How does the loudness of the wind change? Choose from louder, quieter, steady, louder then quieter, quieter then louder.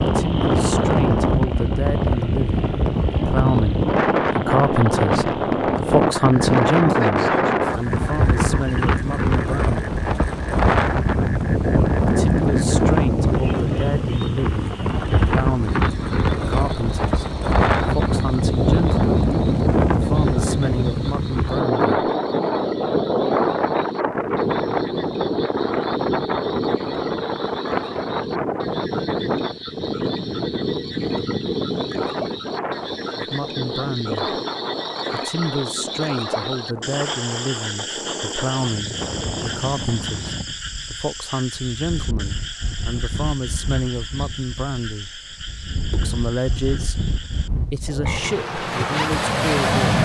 quieter.